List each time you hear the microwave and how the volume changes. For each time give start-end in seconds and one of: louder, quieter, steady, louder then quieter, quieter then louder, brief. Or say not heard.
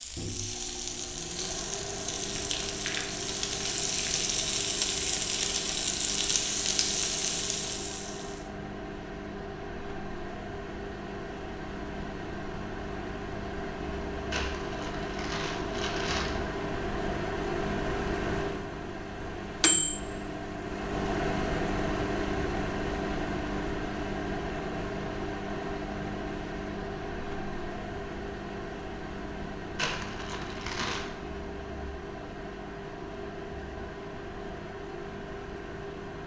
0.0-36.2 louder then quieter.